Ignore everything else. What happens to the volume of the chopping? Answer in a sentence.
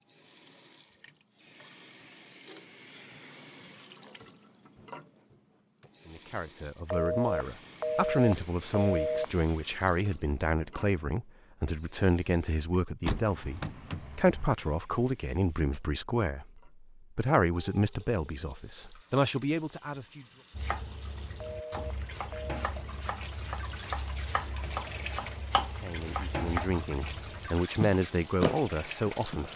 The volume of the chopping goes up.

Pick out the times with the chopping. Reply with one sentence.
The chopping can be heard from 20.6 to 29.4 s.